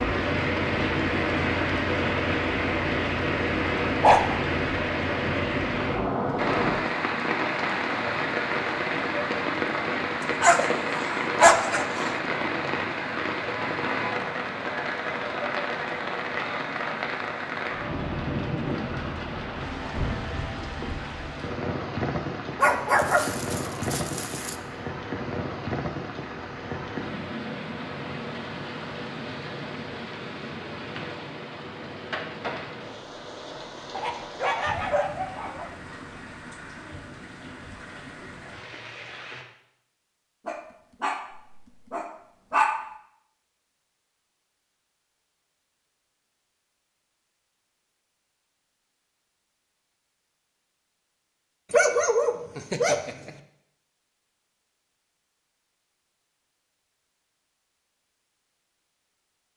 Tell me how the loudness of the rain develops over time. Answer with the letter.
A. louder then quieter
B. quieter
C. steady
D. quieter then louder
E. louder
B.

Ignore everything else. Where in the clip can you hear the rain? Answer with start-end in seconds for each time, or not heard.
0.0-39.5.